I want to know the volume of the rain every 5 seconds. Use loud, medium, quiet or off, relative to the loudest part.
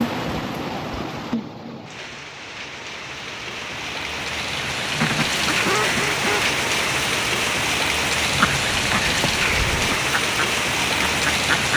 medium, loud, loud.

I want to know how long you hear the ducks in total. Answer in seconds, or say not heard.
5 s.